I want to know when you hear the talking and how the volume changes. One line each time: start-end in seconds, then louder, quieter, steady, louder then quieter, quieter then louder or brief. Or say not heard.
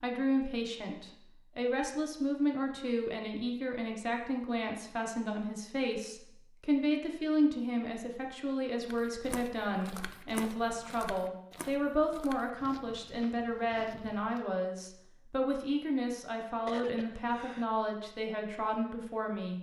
0.0-19.5 steady.